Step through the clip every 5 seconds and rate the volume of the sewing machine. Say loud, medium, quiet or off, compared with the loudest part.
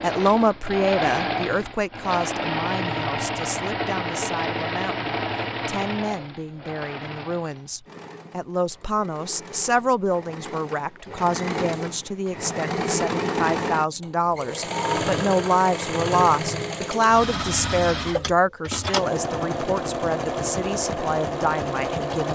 loud, medium, loud, loud, loud.